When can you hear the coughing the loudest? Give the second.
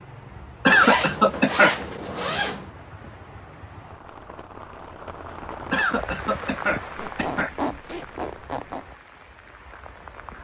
1 s.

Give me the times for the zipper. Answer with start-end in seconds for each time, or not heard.
0.8-2.7, 7.0-8.8.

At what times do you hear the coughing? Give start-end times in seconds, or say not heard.
0.7-1.8, 5.7-7.5.